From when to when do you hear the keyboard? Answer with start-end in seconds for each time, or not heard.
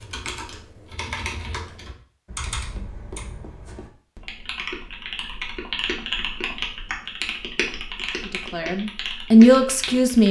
0.0-10.2.